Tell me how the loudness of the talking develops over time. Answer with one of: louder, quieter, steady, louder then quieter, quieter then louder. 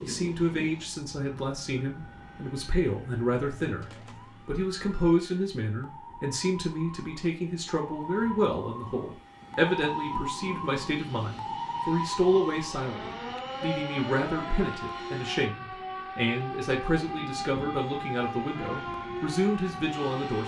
steady.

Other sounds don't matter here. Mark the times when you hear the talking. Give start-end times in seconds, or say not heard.
0.0-20.4.